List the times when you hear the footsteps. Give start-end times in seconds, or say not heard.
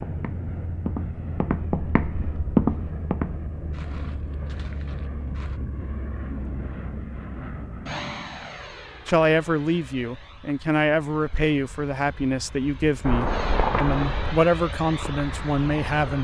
0.0-5.6, 13.1-16.1.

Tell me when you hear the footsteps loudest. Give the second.
3 s.